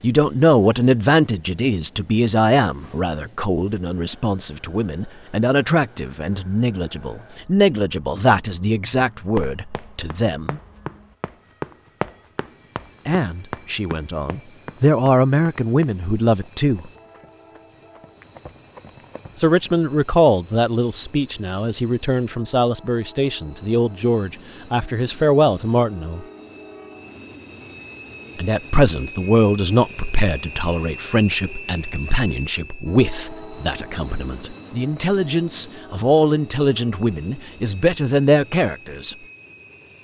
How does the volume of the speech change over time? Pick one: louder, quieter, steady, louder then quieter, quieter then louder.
steady.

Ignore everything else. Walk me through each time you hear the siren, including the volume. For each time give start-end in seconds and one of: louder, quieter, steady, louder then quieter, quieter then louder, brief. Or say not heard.
not heard.